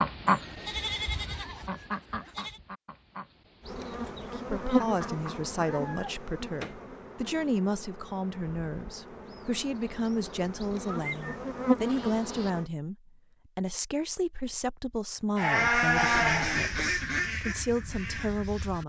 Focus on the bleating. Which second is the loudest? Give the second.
16 s.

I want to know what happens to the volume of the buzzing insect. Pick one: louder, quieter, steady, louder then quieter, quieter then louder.
quieter then louder.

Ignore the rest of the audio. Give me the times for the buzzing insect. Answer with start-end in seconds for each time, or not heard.
3.6-12.7.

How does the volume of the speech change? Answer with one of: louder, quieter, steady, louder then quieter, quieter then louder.
steady.